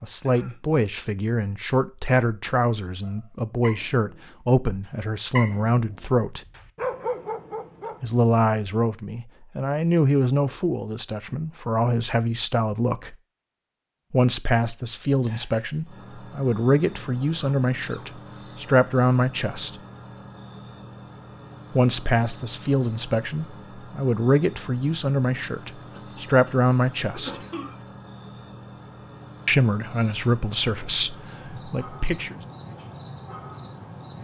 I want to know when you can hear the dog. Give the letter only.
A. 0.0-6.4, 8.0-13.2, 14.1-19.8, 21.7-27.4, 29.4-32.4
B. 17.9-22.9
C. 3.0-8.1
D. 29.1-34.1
C.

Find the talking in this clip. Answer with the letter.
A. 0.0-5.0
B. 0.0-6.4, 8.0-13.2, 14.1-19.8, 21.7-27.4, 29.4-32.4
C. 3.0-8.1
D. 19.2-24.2
B.